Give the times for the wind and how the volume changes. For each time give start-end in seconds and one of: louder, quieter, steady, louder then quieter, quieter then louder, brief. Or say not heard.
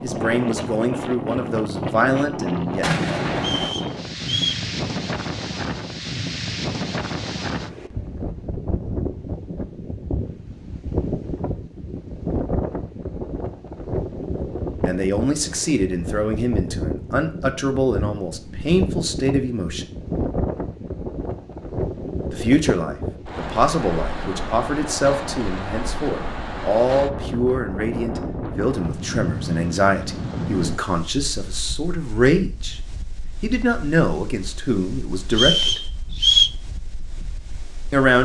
0.0-38.2 quieter.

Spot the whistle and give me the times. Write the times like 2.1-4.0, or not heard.
3.4-4.7, 35.3-36.5.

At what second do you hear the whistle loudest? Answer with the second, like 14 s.
36 s.